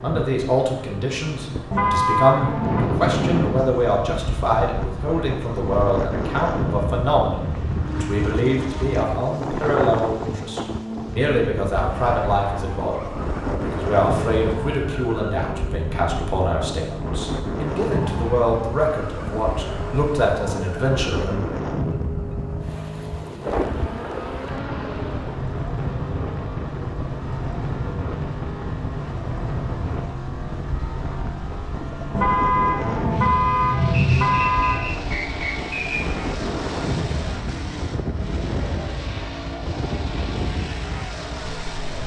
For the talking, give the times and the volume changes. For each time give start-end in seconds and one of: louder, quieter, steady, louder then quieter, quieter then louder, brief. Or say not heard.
0.0-21.6 steady.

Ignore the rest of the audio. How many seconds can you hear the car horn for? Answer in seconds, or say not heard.
4 s.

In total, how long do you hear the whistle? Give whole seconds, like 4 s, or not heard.
2 s.